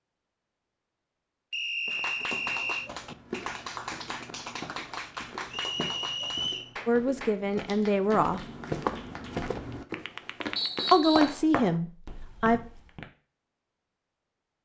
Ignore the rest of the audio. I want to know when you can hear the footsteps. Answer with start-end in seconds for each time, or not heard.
1.9-13.1.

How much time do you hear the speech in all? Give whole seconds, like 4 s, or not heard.
3 s.